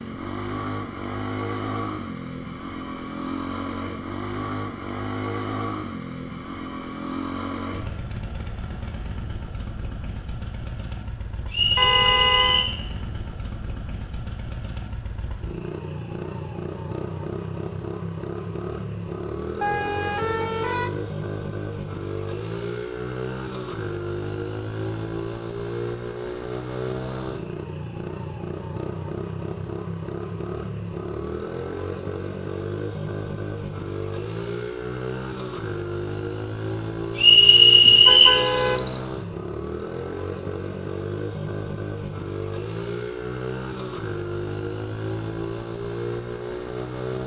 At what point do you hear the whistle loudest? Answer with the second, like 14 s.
38 s.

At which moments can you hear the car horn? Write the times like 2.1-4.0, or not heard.
11.8-12.7, 19.6-21.1, 37.8-39.1.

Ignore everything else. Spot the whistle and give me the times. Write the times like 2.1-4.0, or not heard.
11.5-12.8, 37.1-38.4.